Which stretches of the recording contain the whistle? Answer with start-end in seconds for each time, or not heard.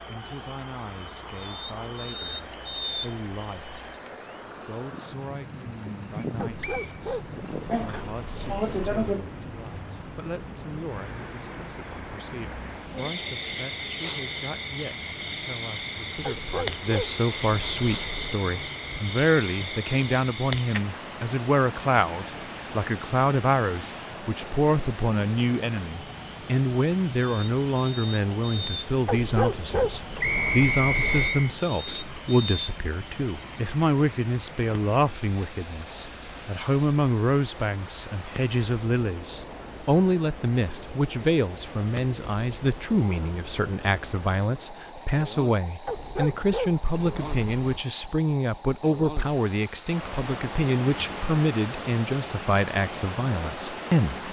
6.6-7.0, 30.2-31.5.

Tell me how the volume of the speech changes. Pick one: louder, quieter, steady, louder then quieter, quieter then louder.
louder.